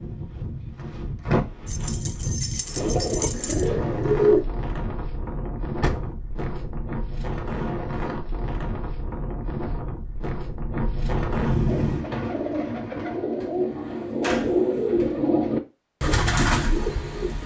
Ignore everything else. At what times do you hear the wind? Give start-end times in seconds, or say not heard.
0.0-12.1.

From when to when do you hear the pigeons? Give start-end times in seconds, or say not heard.
2.8-4.5, 11.7-17.4.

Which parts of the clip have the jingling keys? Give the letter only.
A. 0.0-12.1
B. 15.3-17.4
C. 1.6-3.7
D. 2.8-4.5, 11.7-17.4
C.